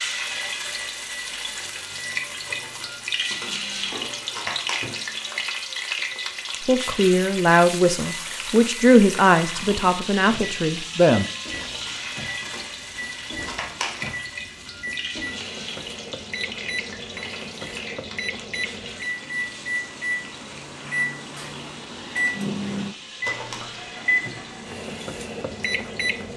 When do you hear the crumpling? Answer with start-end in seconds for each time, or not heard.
2.5-4.8, 11.6-14.2, 23.2-23.8.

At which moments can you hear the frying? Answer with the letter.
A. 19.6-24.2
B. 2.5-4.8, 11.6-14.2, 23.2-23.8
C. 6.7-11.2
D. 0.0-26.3
D.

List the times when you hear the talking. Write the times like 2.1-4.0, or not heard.
6.7-11.2.